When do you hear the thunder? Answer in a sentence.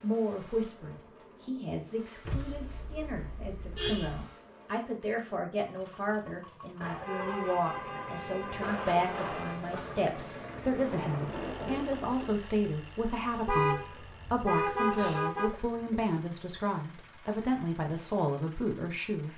You can hear the thunder from 7.9 to 12.3 s.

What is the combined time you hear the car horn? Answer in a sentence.
You can hear the car horn for 7 seconds altogether.